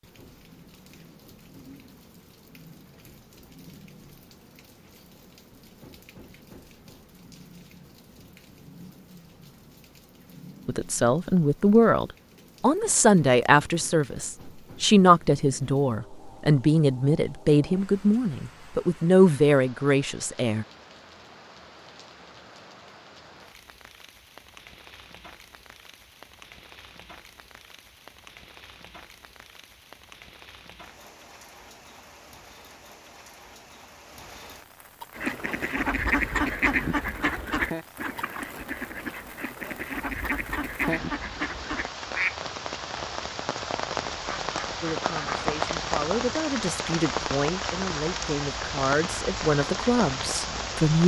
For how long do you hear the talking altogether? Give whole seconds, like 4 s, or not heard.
16 s.